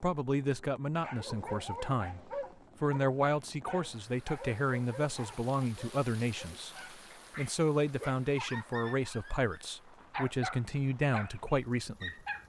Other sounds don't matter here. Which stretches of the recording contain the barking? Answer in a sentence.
The barking can be heard from 0.9 to 12.4 s.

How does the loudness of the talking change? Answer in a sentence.
The volume of the talking stays about the same.